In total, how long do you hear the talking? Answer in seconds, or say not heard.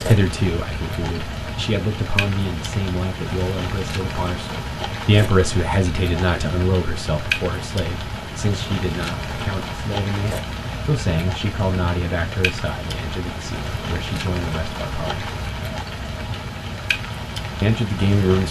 16 s.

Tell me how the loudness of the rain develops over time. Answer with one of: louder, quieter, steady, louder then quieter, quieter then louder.
steady.